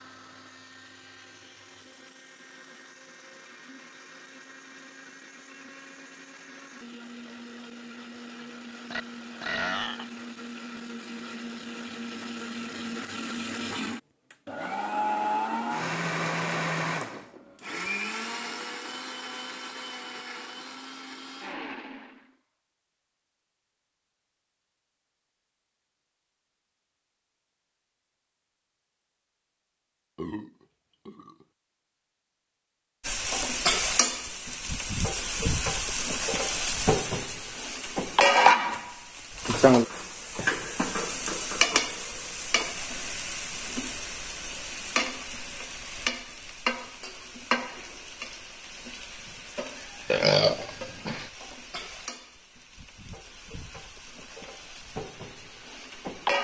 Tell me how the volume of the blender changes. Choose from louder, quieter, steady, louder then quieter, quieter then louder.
louder then quieter.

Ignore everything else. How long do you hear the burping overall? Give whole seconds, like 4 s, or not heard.
4 s.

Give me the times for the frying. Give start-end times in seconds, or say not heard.
33.0-56.3.